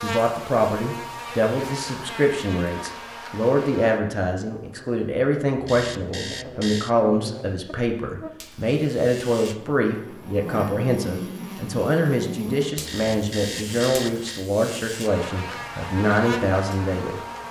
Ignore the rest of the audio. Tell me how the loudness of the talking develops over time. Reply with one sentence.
The loudness of the talking stays about the same.